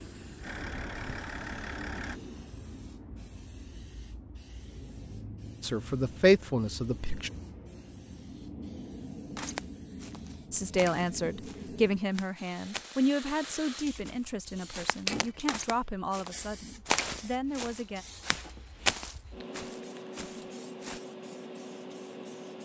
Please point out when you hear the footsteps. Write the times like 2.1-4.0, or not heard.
9.3-21.0.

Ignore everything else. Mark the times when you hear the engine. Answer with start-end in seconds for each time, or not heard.
0.0-2.2.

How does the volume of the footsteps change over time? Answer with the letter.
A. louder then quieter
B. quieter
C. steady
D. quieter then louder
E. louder
E.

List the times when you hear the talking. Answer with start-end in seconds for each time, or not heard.
5.6-7.3, 10.5-18.1.